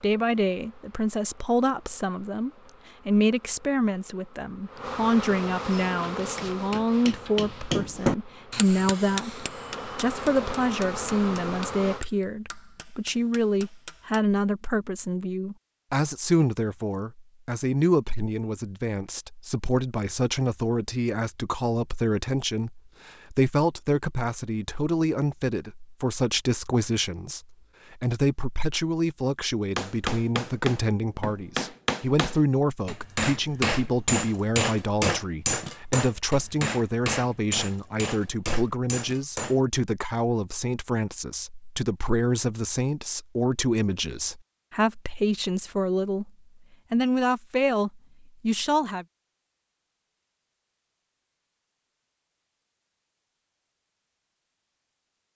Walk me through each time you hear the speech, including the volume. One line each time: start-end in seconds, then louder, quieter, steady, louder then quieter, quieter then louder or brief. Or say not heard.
0.0-46.3 steady
46.9-49.0 brief.